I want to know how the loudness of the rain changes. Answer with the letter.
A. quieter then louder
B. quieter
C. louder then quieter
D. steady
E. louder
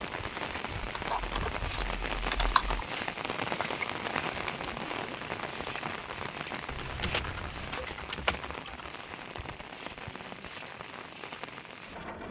B.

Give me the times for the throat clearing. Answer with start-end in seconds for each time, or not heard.
not heard.